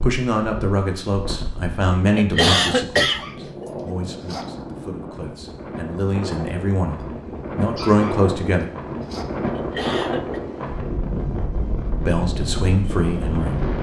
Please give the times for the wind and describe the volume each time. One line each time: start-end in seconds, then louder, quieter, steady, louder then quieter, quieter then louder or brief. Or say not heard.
0.0-13.7 louder.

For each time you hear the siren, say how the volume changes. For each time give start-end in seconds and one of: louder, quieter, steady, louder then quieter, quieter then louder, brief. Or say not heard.
not heard.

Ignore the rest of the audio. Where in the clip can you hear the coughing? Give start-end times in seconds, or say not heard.
2.1-3.6, 9.5-10.4.